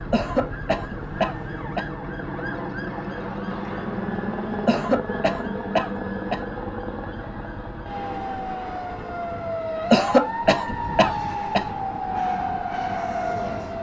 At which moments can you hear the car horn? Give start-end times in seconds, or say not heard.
not heard.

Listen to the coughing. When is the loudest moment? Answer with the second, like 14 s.
10 s.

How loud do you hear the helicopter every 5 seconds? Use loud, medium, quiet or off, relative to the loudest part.
loud, loud, medium.